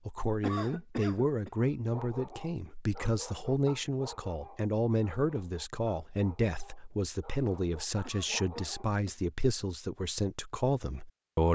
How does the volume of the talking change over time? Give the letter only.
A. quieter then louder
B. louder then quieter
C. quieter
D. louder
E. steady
E.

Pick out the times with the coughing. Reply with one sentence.
You can hear the coughing from 0.4 to 1.5 s and from 8.0 to 9.2 s.